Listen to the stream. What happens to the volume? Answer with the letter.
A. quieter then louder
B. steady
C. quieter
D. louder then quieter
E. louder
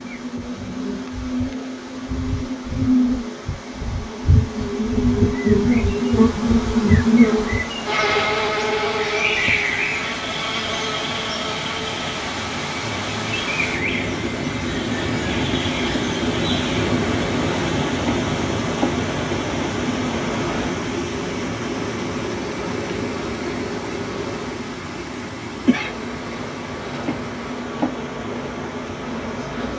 D.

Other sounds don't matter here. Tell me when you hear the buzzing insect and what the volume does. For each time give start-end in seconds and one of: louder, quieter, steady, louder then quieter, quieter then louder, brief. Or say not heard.
0.0-29.7 quieter.